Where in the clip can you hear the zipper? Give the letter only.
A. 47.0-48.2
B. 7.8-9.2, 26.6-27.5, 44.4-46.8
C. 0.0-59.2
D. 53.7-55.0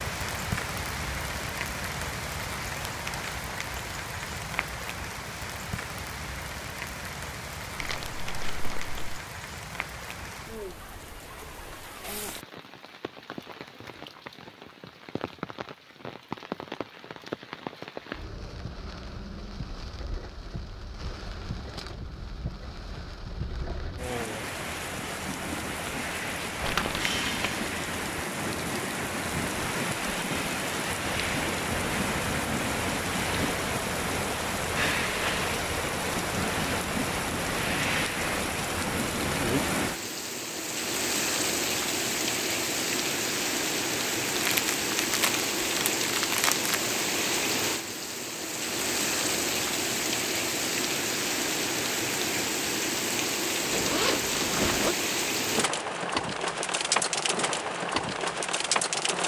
D.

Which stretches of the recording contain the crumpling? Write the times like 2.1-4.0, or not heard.
7.8-9.2, 26.6-27.5, 44.4-46.8.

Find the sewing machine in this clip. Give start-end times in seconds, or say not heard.
not heard.